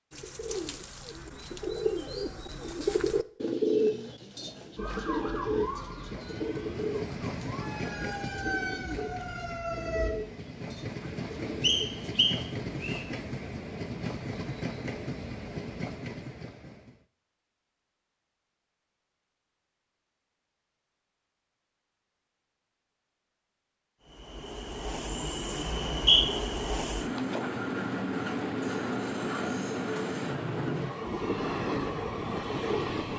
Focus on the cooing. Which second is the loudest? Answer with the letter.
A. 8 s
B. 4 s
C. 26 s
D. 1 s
B.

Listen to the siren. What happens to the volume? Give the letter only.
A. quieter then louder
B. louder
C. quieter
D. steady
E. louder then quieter
A.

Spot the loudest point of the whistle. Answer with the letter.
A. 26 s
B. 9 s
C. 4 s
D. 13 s
A.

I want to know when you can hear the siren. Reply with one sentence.
The siren can be heard from 4.8 to 10.2 s.